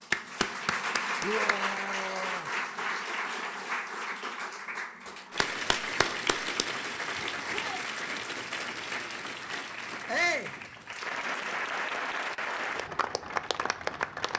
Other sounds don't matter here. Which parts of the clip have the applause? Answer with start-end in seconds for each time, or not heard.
0.0-14.3.